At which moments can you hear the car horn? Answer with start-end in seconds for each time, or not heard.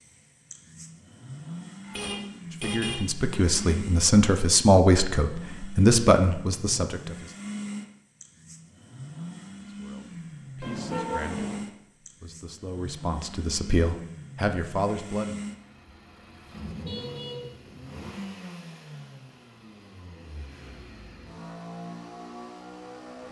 1.8-3.0, 10.6-11.7, 16.8-18.1.